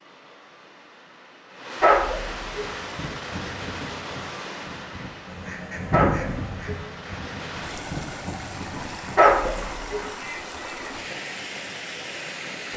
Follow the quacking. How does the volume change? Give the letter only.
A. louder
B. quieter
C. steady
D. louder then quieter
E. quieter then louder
D.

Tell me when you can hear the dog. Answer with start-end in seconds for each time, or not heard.
1.8-2.7, 5.9-6.8, 9.2-10.1.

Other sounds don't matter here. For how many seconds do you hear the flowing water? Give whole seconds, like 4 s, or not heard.
13 s.